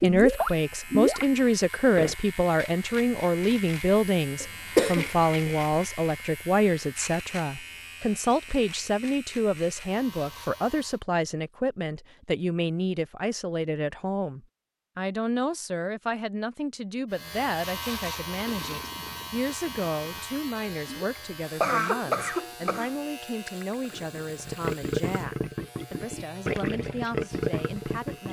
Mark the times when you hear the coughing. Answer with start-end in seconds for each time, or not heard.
4.4-5.5, 21.6-22.9.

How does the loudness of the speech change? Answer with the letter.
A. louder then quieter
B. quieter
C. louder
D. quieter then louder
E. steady
B.